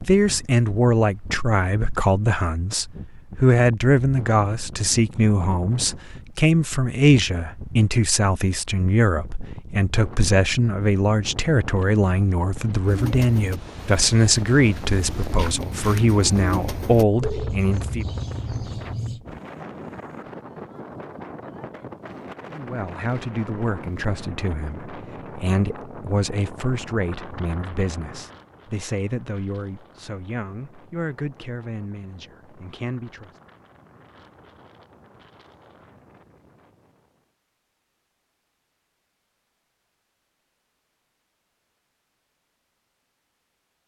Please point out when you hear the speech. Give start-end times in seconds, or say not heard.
0.0-18.1, 22.5-33.3.